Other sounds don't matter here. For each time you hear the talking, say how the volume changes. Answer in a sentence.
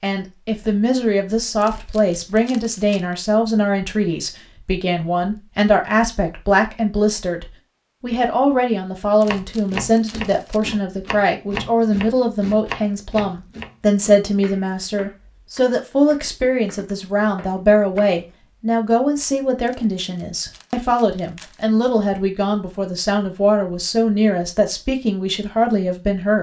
You can hear the talking from 0.0 to 26.3 s, at a steady volume.